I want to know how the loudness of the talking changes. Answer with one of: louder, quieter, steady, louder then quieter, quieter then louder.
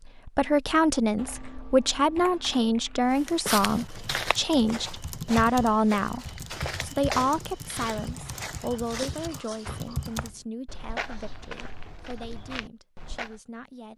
quieter.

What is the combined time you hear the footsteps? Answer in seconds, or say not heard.
10 s.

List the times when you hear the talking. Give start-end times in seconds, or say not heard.
0.1-13.9.